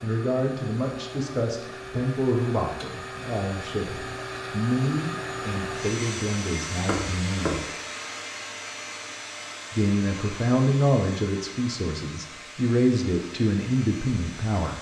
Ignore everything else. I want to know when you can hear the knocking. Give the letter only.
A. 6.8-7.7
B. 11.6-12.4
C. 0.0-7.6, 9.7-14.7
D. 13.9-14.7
A.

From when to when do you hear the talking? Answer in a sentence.
The talking can be heard from 0.0 to 7.6 s and from 9.7 to 14.7 s.